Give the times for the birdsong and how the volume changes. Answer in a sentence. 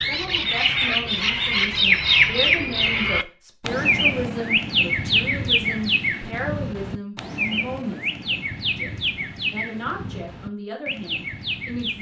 The birdsong can be heard from 0.0 to 11.9 s, getting quieter.